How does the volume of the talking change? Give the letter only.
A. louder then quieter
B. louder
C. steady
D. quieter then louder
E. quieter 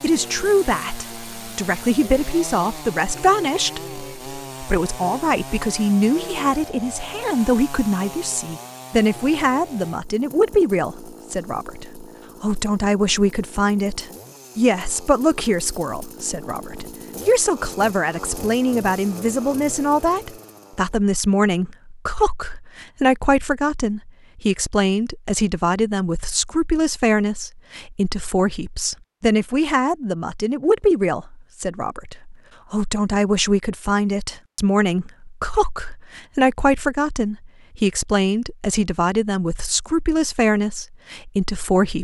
C.